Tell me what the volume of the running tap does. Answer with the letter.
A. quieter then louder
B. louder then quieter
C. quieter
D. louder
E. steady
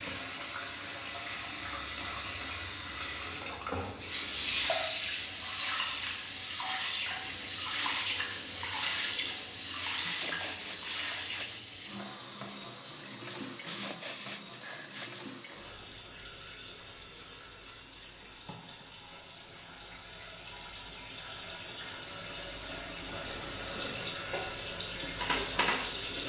A.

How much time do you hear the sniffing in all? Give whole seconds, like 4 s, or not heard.
3 s.